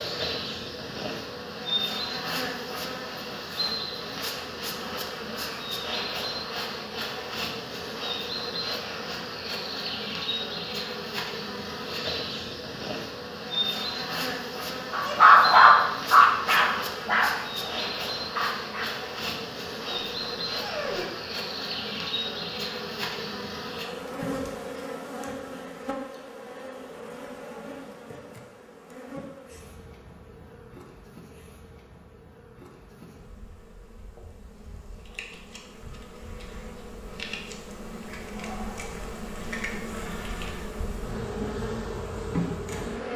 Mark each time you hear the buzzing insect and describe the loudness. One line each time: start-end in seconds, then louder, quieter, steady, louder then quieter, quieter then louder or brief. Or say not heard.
0.0-43.1 quieter then louder.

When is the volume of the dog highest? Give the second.
15 s.